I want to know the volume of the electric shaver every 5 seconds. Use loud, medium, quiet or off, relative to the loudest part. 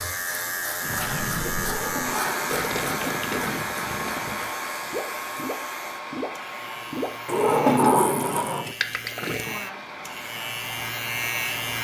loud, medium, loud.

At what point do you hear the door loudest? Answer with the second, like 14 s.
8 s.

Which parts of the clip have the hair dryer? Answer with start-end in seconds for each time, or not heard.
2.0-11.7.